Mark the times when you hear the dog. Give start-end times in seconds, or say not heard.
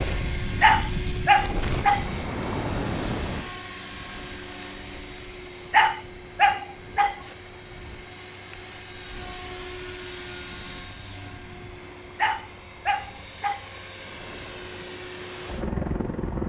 0.6-2.2, 5.7-7.3, 12.2-13.8.